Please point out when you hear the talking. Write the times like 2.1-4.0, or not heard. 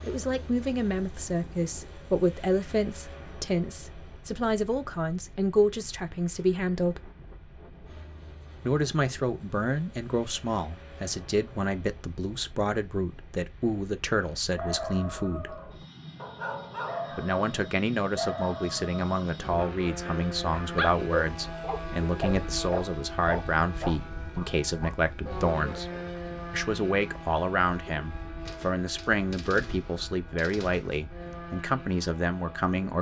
0.0-7.0, 8.6-15.6, 17.1-25.9, 26.5-32.9.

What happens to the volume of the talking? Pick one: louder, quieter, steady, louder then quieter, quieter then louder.
steady.